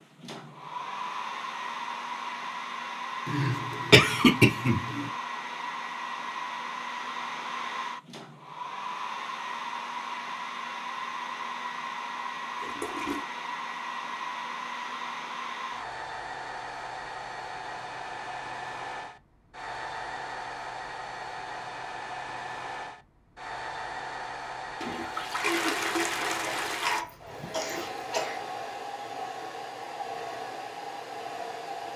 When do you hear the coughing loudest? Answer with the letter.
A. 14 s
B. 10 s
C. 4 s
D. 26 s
C.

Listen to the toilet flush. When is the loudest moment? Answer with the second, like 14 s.
26 s.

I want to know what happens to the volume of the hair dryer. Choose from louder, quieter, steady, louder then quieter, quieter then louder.
steady.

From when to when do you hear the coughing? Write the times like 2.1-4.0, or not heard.
3.2-5.1, 26.4-28.4.